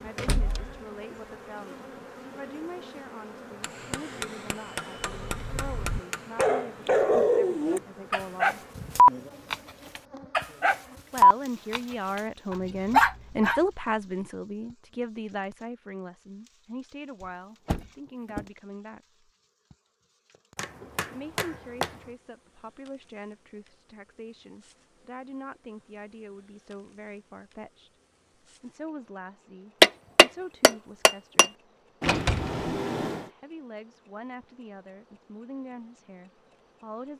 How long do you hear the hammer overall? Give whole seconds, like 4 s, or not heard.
6 s.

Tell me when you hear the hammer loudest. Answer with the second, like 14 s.
30 s.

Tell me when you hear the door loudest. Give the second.
32 s.